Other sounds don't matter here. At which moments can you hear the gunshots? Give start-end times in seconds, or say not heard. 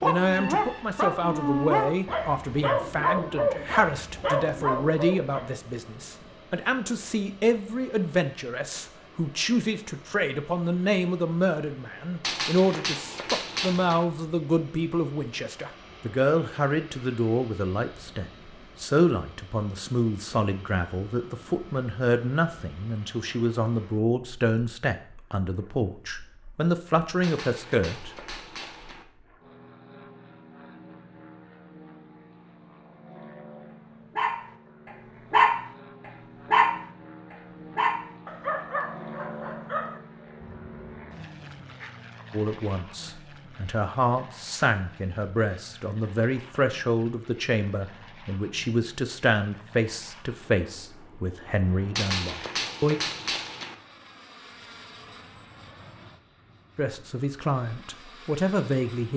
12.2-14.1, 27.2-29.1, 52.0-53.8.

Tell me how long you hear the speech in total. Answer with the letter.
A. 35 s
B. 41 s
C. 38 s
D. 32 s
B.